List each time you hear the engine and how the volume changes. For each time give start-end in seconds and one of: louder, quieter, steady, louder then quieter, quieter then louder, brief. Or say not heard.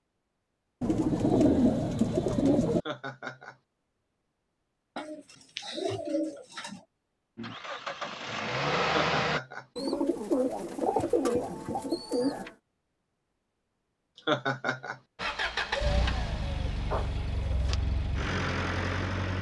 7.3-9.4 brief
15.2-19.3 quieter then louder.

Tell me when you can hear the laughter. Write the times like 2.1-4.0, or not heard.
2.8-3.5, 8.8-9.7, 14.2-15.0.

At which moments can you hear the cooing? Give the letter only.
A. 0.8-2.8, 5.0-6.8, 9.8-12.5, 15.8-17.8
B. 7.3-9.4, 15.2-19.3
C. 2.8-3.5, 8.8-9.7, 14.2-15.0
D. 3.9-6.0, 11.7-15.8
A.